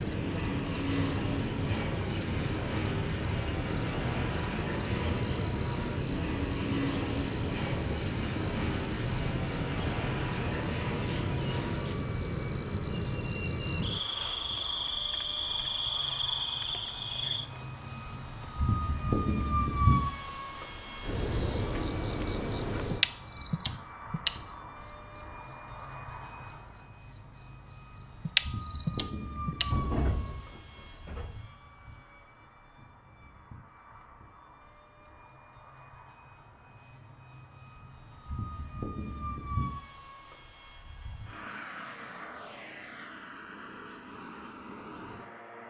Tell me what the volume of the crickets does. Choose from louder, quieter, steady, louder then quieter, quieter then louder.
steady.